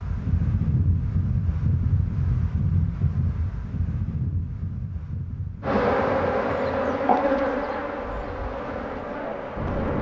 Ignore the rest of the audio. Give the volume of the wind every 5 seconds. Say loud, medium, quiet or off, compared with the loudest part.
loud, medium.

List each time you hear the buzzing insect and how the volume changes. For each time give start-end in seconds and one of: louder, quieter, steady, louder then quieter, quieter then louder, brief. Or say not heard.
5.6-9.9 quieter.